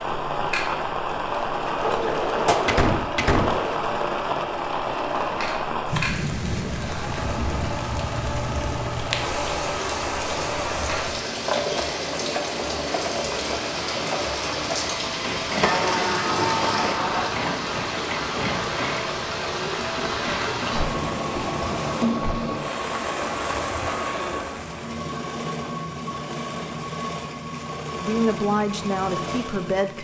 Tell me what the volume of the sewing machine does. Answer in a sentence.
The volume of the sewing machine stays about the same.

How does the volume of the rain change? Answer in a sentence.
The loudness of the rain stays about the same.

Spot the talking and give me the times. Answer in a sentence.
The talking can be heard from 28.0 to 29.9 s.